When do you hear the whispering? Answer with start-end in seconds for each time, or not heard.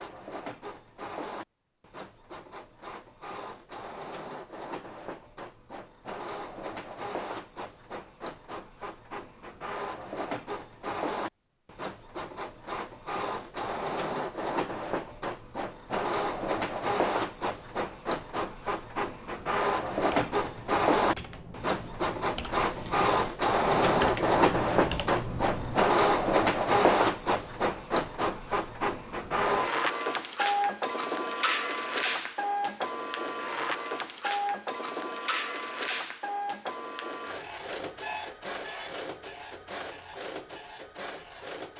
not heard.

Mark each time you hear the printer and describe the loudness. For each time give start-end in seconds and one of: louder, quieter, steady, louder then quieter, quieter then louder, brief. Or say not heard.
0.0-41.7 louder then quieter.